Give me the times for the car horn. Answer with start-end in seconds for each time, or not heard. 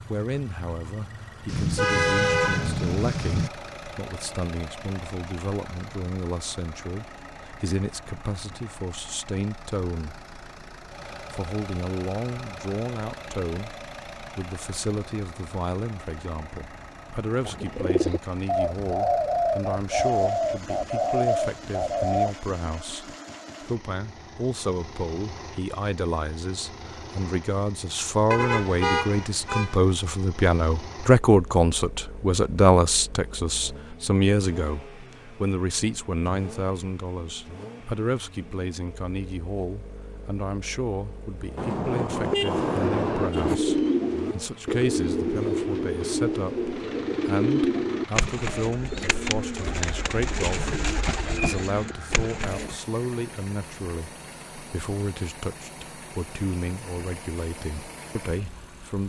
1.4-3.5, 28.3-29.8, 41.5-43.6.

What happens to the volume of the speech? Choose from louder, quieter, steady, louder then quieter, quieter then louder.
louder then quieter.